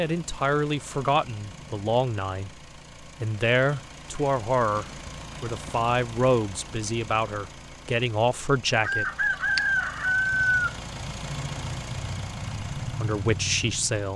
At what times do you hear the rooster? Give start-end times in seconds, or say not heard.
8.8-10.8.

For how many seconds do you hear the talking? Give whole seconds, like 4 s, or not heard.
10 s.